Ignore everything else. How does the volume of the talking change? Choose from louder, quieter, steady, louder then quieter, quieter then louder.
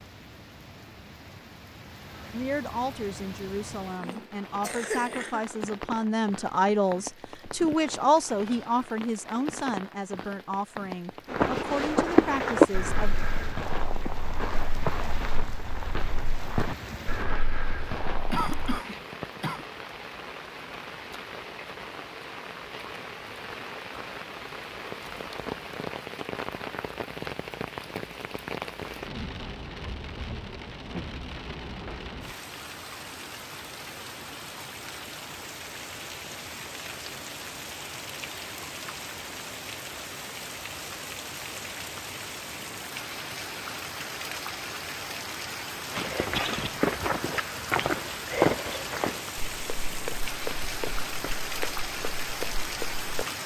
louder then quieter.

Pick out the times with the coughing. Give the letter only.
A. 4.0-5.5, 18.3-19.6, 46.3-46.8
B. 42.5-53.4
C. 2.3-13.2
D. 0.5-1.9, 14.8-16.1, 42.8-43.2
A.